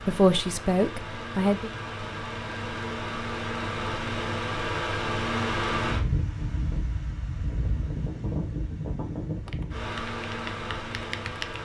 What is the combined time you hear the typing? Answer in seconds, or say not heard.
2 s.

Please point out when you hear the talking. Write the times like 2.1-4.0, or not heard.
0.0-1.7.